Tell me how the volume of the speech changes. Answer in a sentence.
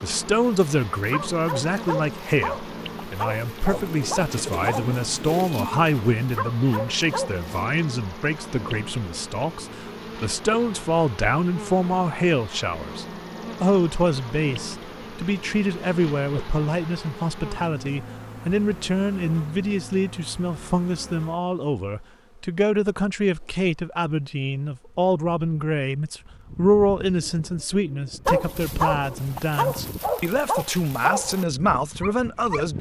The loudness of the speech stays about the same.